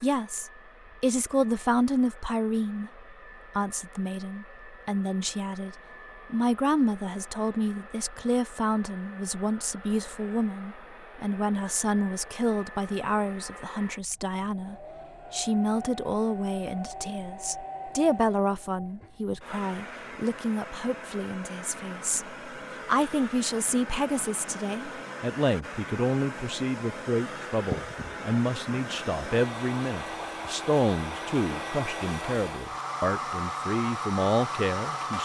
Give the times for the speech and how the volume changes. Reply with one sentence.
The speech can be heard from 0.0 to 35.1 s, at a steady volume.